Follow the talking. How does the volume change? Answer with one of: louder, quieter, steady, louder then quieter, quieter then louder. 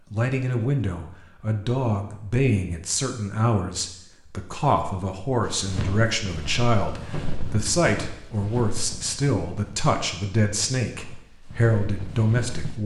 steady.